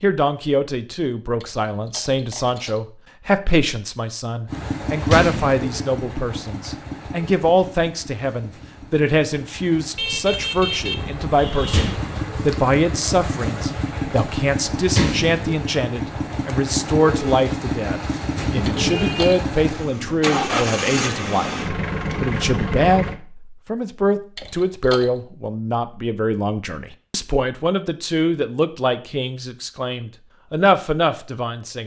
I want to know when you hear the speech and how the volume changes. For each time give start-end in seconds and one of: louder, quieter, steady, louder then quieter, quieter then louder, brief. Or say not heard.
0.0-31.8 steady.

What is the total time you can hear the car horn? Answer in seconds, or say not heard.
3 s.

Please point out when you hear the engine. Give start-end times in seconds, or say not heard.
4.5-23.2.